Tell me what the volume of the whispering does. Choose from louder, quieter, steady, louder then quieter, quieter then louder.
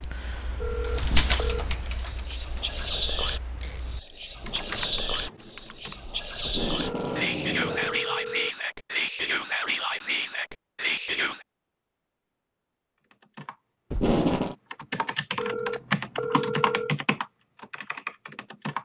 steady.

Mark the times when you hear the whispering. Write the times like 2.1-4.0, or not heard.
1.1-11.4.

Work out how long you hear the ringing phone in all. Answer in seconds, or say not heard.
4 s.